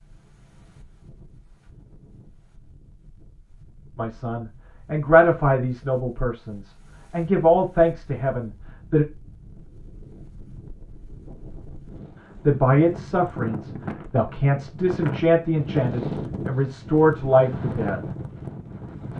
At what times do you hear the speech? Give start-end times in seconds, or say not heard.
4.0-9.1, 12.3-18.1.